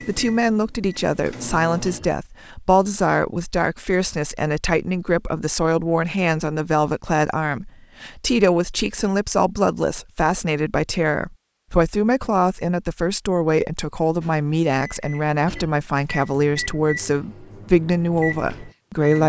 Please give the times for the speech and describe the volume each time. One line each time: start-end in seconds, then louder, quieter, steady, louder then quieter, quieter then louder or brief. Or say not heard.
0.1-19.2 steady.